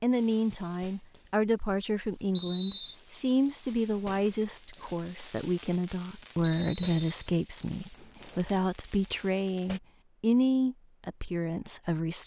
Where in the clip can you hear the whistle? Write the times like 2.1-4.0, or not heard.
2.3-3.0, 6.4-7.3.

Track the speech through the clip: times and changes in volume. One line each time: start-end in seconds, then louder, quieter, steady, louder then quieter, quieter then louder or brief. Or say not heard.
0.0-12.2 steady.